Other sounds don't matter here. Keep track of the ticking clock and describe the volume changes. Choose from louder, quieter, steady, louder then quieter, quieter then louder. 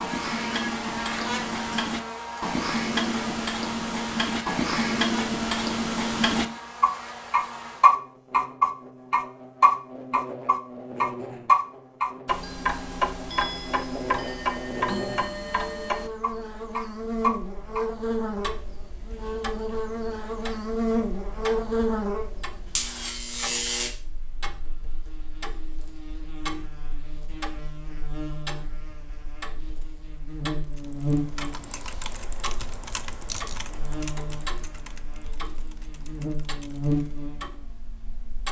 quieter.